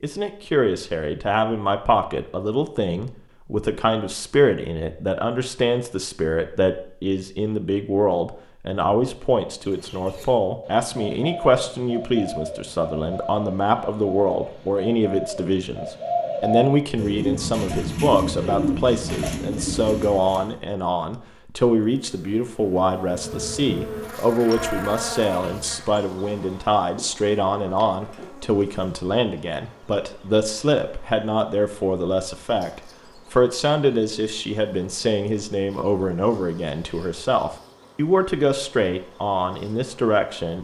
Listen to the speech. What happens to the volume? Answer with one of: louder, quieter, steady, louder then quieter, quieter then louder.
steady.